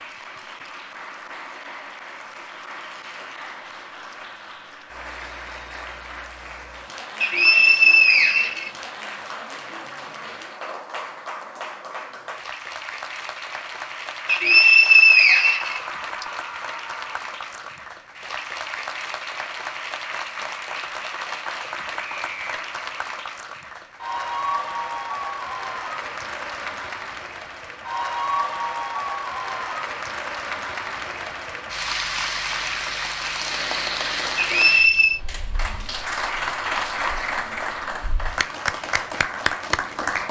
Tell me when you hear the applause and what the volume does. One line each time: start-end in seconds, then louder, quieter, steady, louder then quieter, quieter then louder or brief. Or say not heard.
0.0-40.2 louder.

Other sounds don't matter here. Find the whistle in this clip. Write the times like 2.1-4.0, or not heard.
7.2-8.7, 14.2-16.2, 34.4-35.2.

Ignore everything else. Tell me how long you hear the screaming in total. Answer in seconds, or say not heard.
2 s.